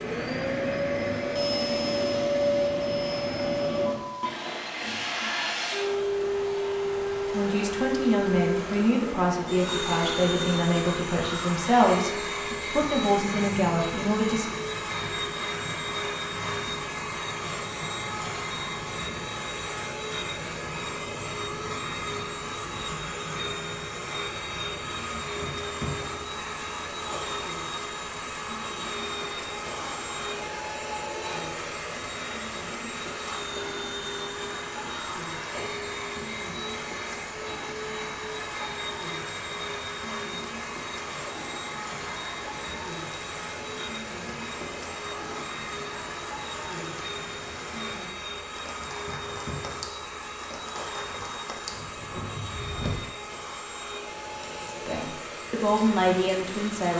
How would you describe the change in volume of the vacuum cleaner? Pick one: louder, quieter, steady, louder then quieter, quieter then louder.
quieter.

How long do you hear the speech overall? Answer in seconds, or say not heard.
9 s.